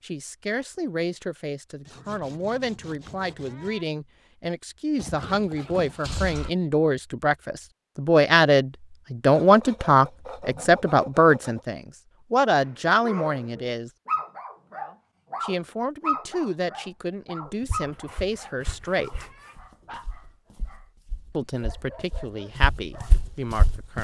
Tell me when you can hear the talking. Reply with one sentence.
The talking can be heard from 0.0 to 13.9 s, from 15.4 to 19.2 s and from 21.3 to 24.0 s.